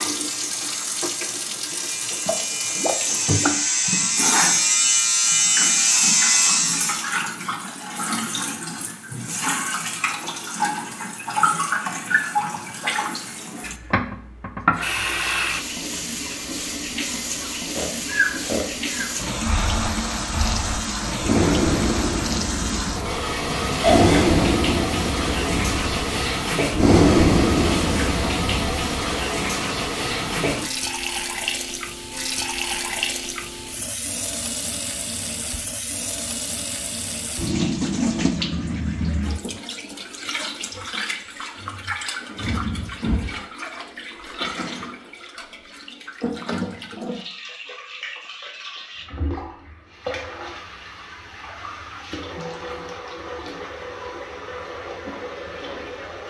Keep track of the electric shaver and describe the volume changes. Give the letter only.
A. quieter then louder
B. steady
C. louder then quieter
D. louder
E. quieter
D.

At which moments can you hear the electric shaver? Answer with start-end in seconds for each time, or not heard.
0.0-7.0.